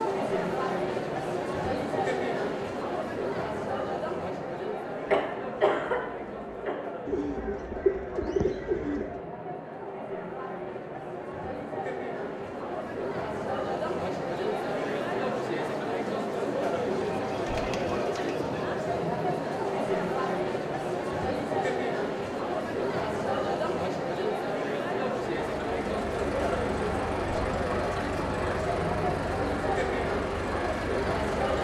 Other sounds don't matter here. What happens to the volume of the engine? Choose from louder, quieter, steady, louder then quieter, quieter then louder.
steady.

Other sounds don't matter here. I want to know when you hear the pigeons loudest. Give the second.
8 s.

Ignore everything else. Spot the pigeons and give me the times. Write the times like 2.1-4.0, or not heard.
7.0-9.2, 16.8-18.6.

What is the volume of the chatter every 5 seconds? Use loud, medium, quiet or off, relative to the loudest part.
loud, medium, loud, loud, loud, loud, loud.